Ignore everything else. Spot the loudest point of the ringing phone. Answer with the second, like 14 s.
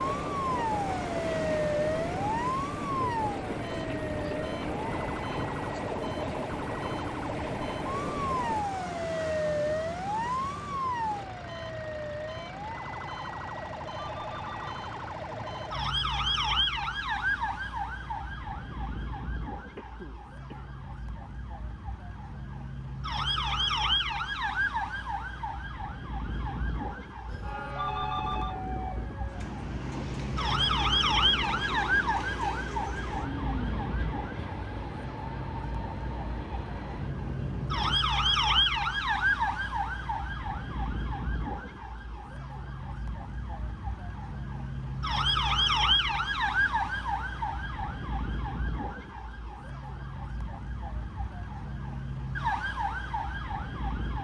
28 s.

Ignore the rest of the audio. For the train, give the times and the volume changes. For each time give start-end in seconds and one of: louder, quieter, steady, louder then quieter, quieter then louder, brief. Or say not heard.
0.0-8.7 steady
27.2-38.0 steady.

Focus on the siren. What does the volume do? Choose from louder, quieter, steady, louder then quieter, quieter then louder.
steady.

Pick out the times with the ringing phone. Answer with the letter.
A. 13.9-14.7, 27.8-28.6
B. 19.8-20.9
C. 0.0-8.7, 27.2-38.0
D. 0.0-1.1
A.